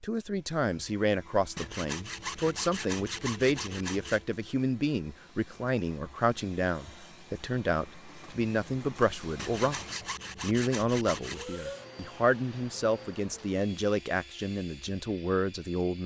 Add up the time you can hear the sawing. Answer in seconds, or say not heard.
5 s.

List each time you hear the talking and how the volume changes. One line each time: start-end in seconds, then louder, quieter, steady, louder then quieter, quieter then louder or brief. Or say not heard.
0.0-16.0 steady.